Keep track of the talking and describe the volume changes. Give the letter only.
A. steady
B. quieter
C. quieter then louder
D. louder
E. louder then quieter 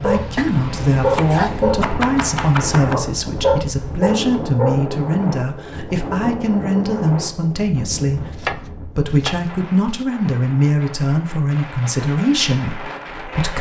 A.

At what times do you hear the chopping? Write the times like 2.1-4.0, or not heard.
0.3-3.0, 8.4-10.1.